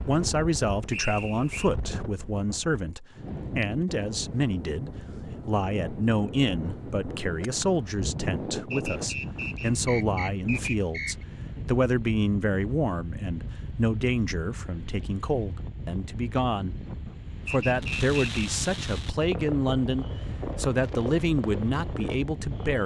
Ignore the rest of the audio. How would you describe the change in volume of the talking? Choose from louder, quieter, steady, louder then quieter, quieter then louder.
steady.